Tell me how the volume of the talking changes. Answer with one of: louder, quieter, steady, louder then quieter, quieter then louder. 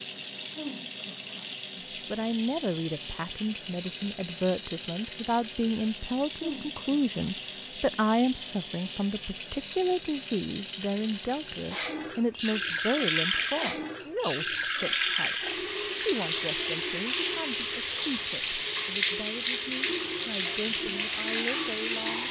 quieter.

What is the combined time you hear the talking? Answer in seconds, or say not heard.
20 s.